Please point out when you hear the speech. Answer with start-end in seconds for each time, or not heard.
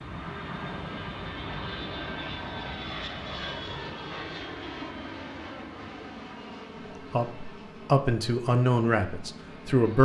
7.1-9.9.